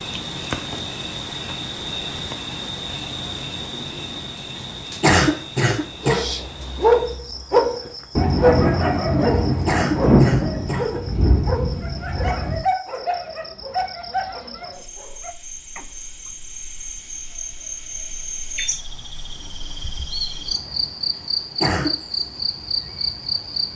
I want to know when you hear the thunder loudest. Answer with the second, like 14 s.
10 s.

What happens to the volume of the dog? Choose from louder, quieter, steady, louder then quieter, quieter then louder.
quieter.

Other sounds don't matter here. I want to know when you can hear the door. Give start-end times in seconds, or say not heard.
not heard.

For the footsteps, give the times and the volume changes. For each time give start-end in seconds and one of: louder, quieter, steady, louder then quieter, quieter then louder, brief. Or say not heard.
not heard.